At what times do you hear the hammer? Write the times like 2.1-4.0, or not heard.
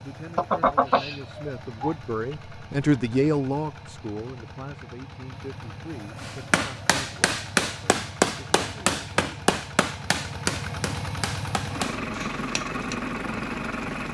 6.2-13.0.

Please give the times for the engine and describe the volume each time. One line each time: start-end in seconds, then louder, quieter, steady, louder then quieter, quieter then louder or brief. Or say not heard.
0.0-14.0 louder.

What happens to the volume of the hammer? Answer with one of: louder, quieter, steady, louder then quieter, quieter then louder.
quieter.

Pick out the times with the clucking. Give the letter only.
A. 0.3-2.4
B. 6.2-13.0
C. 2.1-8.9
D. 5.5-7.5
A.